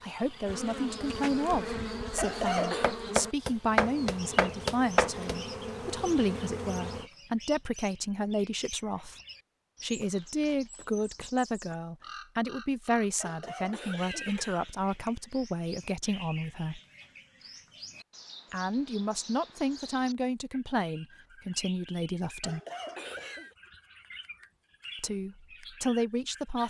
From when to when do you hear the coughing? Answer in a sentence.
The coughing can be heard from 2.1 to 2.9 s, from 13.2 to 15.1 s and from 22.4 to 23.6 s.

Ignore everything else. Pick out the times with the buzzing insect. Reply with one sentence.
The buzzing insect can be heard from 0.0 to 7.1 s.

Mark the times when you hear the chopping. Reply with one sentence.
The chopping can be heard from 2.5 to 5.3 s.